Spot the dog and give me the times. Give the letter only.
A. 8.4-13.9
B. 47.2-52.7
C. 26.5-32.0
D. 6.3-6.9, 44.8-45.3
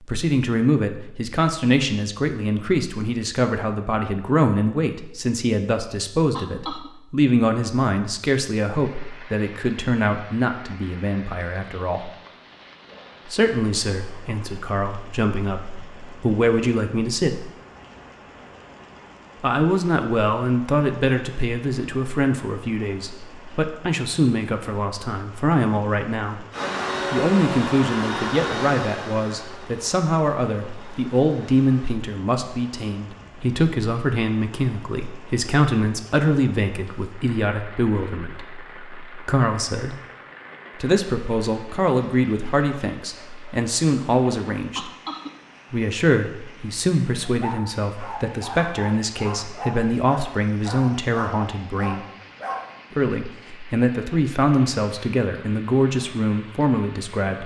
B.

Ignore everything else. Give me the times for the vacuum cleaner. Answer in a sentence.
You can hear the vacuum cleaner from 26.5 to 32.0 s.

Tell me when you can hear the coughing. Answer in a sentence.
The coughing can be heard from 6.3 to 6.9 s and from 44.8 to 45.3 s.